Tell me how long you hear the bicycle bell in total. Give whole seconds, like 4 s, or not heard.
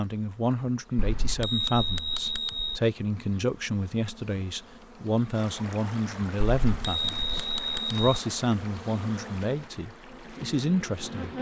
3 s.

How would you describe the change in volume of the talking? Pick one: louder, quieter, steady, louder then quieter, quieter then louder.
steady.